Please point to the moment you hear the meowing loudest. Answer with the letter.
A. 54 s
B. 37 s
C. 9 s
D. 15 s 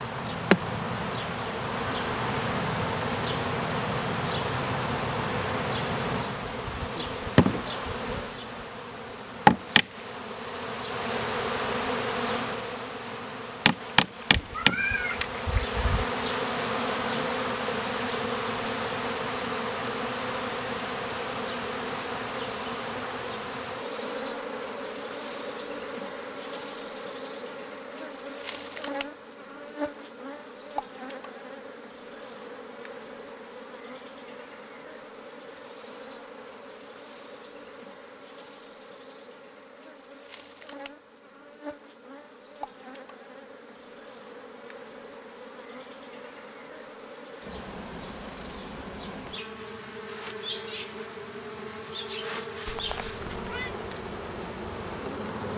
D.